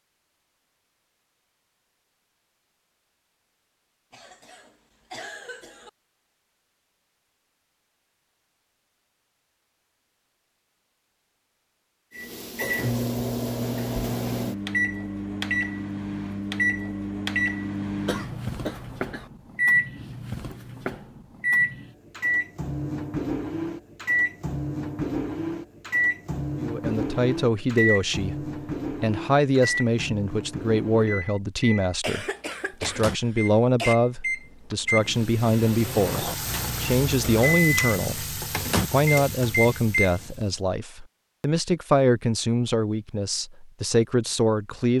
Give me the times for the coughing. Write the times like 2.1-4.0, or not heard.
4.1-5.9, 18.1-19.3, 32.0-34.0.